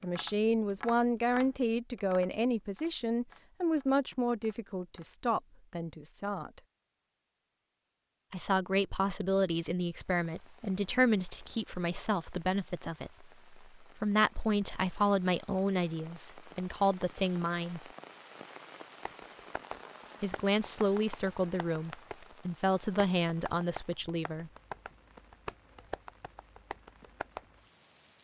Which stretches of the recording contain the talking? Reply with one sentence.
You can hear the talking from 0.0 to 6.6 s, from 8.3 to 17.8 s and from 20.2 to 24.5 s.